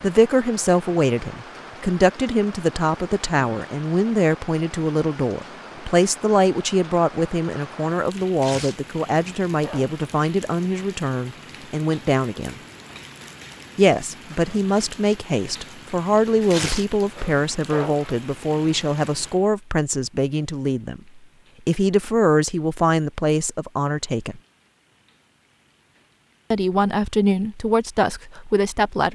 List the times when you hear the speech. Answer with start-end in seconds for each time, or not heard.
0.0-12.6, 13.8-24.4, 26.5-29.1.